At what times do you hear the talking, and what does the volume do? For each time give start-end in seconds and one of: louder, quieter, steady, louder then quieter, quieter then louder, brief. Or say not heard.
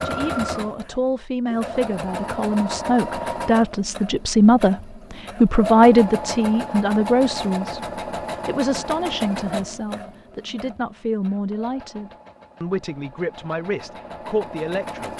0.0-15.1 louder then quieter.